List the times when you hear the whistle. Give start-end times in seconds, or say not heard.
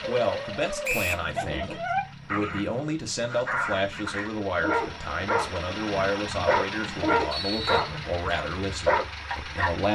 0.8-1.2, 7.3-7.9.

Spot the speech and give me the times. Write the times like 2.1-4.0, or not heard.
0.1-9.9.